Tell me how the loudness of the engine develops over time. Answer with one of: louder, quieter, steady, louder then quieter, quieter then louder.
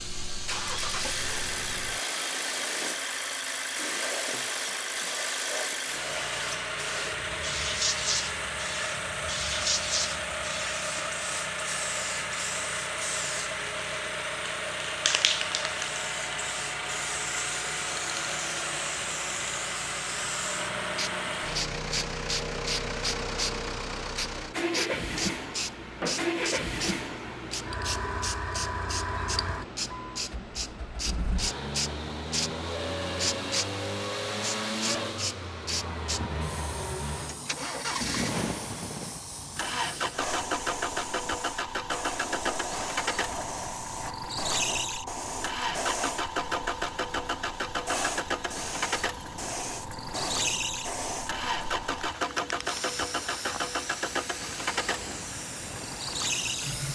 steady.